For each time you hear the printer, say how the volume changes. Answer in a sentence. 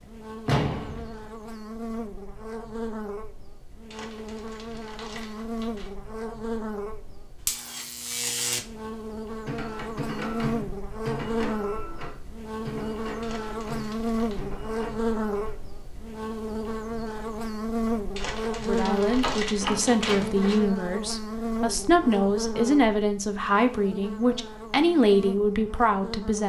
The printer can be heard from 9.4 to 15.6 s, getting quieter.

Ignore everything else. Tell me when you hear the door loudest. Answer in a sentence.
The volume of the door peaks at 1 second.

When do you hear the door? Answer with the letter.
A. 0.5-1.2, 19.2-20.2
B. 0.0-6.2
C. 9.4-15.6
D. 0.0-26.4
A.